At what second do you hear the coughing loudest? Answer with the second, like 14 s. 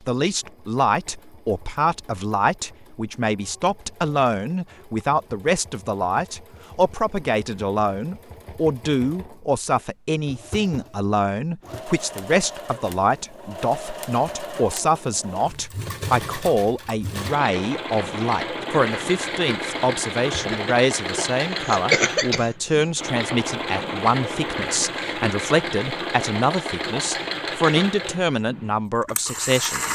22 s.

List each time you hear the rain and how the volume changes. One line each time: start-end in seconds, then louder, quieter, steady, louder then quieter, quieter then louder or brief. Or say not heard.
not heard.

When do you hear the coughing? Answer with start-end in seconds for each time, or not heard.
20.3-22.7.